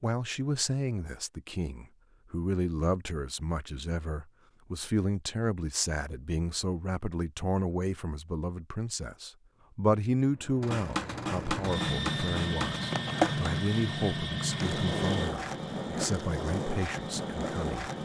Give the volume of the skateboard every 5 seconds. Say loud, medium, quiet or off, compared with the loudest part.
off, off, loud, loud.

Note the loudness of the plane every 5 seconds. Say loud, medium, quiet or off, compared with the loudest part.
off, off, loud, medium.